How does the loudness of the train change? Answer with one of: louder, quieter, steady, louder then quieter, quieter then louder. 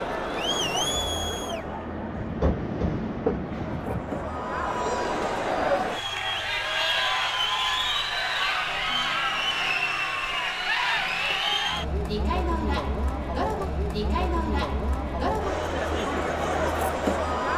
louder then quieter.